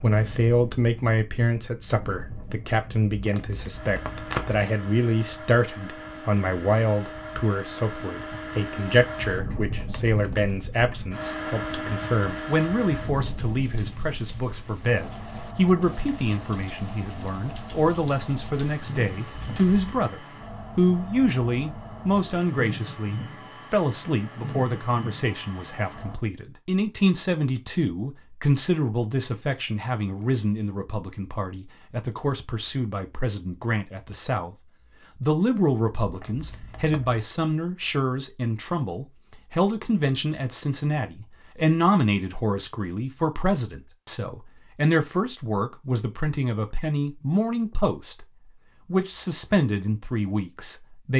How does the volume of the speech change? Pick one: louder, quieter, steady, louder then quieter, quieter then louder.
steady.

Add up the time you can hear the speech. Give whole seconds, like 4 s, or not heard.
51 s.